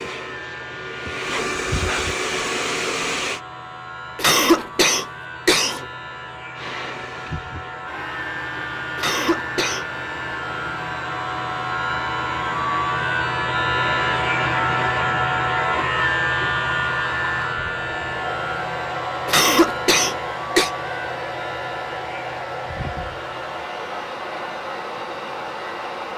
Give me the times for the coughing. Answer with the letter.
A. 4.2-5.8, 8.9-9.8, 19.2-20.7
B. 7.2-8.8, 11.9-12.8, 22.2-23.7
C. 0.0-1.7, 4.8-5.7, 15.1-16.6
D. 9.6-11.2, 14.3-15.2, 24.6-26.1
A.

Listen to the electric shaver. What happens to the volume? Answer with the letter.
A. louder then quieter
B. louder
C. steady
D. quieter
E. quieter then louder
A.